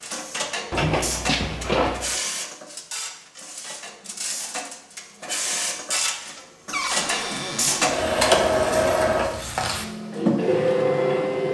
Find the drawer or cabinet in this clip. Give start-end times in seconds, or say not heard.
0.7-2.1, 6.7-8.0.